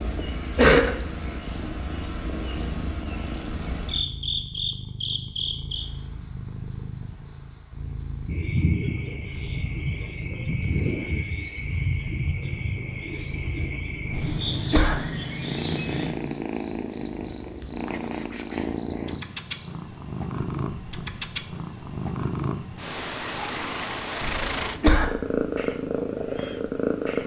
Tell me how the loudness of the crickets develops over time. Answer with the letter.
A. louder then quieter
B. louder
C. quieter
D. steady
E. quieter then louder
D.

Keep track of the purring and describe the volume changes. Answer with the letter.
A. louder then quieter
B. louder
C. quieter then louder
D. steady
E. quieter
B.